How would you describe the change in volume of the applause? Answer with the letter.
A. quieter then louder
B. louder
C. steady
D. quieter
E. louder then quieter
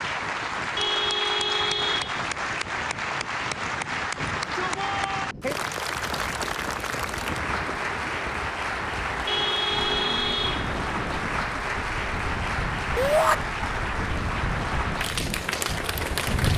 C.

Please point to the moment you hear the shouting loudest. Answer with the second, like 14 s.
13 s.